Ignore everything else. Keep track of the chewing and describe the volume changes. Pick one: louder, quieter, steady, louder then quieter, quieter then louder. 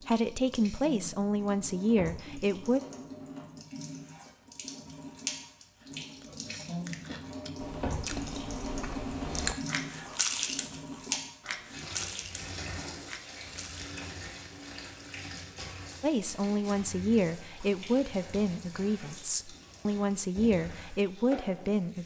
louder then quieter.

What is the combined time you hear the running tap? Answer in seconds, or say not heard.
22 s.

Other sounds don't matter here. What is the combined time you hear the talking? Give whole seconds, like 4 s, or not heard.
9 s.